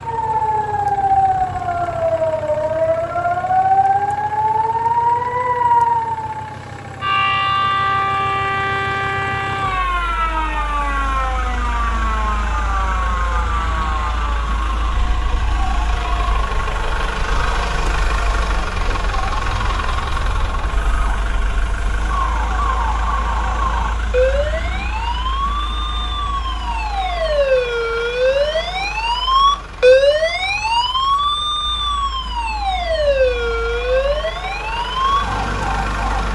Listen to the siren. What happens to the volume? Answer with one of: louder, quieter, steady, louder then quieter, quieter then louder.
quieter then louder.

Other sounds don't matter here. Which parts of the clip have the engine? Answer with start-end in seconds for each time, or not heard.
0.0-36.3.